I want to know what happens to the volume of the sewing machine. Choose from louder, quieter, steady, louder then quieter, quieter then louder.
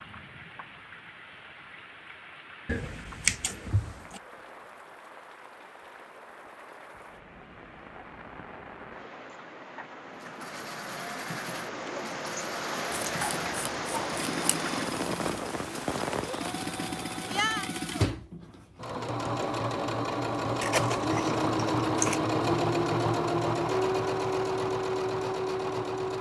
louder.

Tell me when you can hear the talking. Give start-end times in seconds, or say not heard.
not heard.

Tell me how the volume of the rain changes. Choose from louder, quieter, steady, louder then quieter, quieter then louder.
louder.